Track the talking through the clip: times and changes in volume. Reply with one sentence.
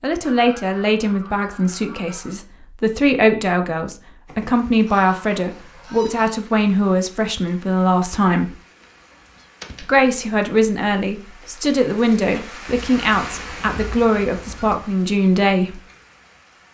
You can hear the talking from 0.0 to 8.6 s, at a steady volume; and from 9.8 to 15.8 s, at a steady volume.